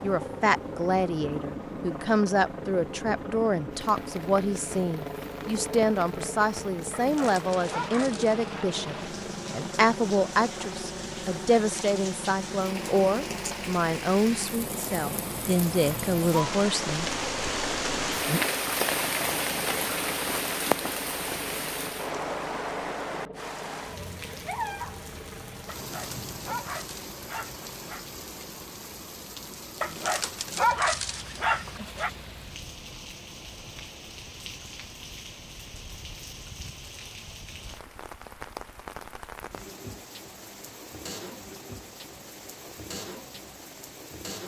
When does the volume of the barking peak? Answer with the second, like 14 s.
31 s.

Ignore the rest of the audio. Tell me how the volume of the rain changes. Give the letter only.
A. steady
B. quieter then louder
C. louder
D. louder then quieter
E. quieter
D.